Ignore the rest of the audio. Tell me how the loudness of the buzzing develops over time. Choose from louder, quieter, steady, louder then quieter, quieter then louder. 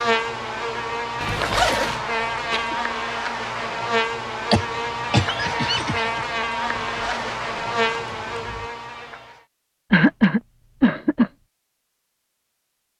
steady.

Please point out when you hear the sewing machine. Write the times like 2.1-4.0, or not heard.
not heard.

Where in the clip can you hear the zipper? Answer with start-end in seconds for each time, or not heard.
1.2-2.0, 6.7-8.7.